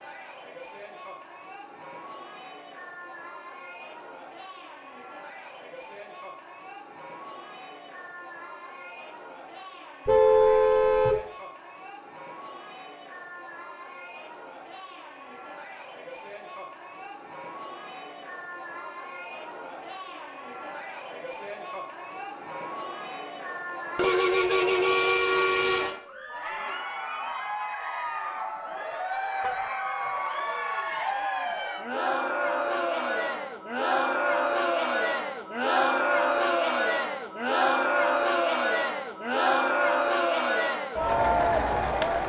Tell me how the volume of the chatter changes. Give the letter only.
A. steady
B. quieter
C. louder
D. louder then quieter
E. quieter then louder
C.